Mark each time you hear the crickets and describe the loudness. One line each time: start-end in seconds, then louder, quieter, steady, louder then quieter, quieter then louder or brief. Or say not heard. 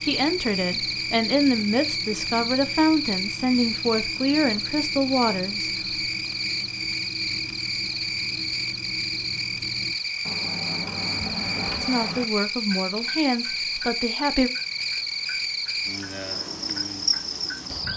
0.0-17.9 steady.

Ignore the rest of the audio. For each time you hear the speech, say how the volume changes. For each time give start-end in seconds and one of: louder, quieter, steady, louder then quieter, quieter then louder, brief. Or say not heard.
0.0-5.7 steady
11.8-14.5 brief.